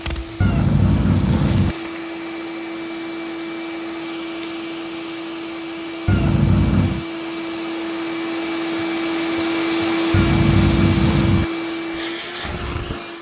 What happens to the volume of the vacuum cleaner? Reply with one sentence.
The loudness of the vacuum cleaner goes up.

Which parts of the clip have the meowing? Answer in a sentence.
You can hear the meowing from 0.4 to 1.8 s, from 6.0 to 7.0 s and from 10.1 to 11.4 s.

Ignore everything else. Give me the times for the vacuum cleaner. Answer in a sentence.
You can hear the vacuum cleaner from 0.0 to 13.1 s.